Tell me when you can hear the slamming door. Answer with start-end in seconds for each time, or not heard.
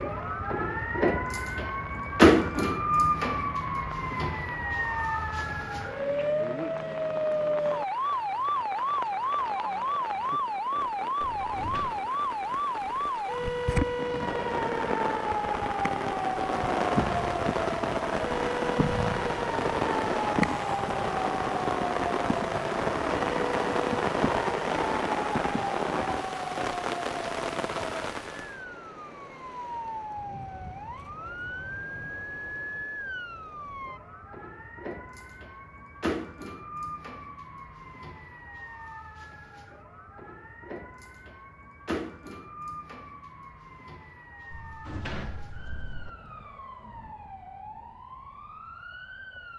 11.2-12.0, 44.5-46.1.